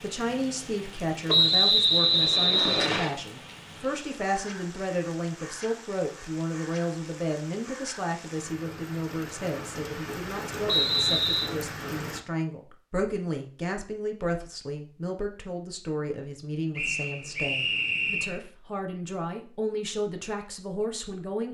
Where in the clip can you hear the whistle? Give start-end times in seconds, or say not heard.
1.2-3.1, 10.7-11.5, 16.8-18.4.